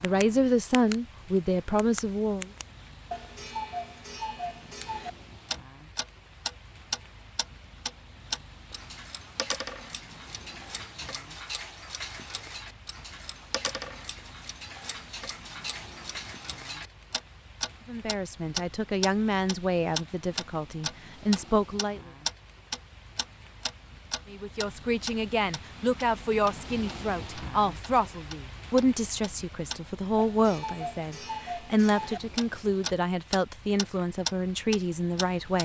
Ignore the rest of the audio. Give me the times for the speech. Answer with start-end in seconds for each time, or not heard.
0.0-2.5, 17.9-22.1, 24.3-35.6.